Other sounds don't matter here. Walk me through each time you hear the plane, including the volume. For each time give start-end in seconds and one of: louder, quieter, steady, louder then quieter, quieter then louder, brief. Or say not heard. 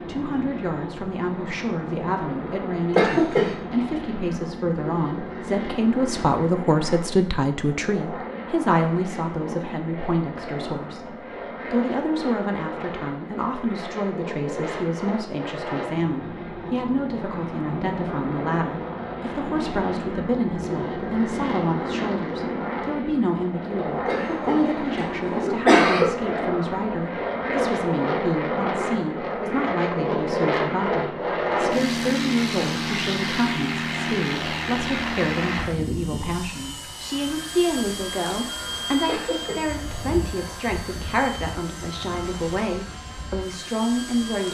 0.0-44.4 louder then quieter.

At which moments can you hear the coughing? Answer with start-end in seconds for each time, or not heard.
2.9-3.5, 24.1-26.1, 39.0-39.8.